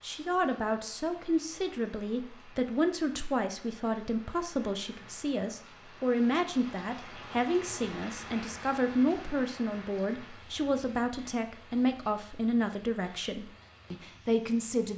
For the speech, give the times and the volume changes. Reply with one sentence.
You can hear the speech from 0.0 to 14.9 s, at a steady volume.